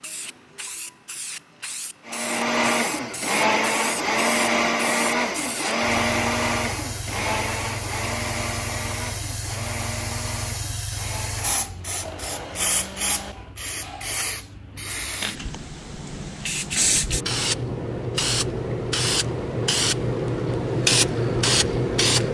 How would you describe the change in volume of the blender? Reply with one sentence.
The volume of the blender goes down.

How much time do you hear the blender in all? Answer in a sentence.
You can hear the blender for 12 seconds altogether.